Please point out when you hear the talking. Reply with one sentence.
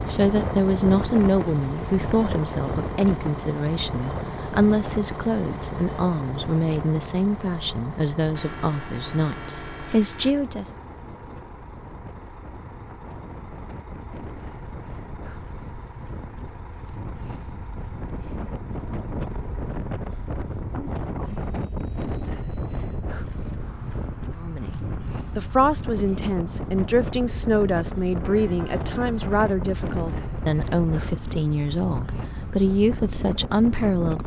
The talking can be heard from 0.1 to 10.7 s and from 24.4 to 34.2 s.